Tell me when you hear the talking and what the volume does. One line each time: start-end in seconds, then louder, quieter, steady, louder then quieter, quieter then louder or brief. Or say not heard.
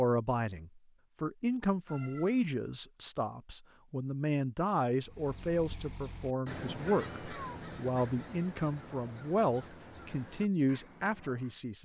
0.0-11.8 steady.